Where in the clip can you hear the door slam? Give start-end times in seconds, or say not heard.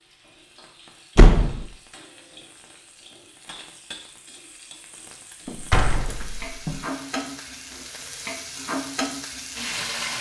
1.1-1.7, 5.5-6.8.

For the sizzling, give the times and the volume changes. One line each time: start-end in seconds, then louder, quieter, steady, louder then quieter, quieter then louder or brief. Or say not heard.
0.0-10.1 louder.